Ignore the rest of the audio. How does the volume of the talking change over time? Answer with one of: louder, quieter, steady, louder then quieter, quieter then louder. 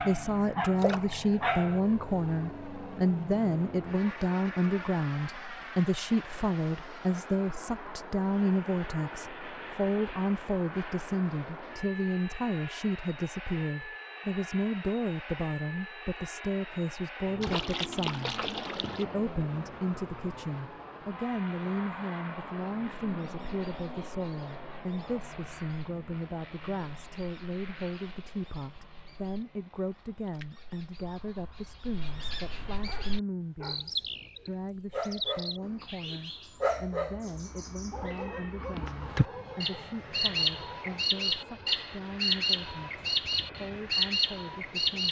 quieter.